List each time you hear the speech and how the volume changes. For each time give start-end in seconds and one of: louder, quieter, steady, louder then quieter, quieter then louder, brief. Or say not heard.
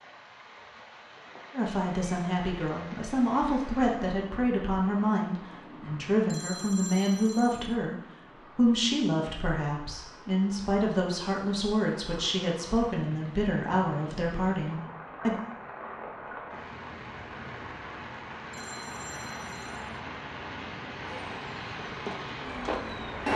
1.5-15.4 steady.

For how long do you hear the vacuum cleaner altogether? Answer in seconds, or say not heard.
2 s.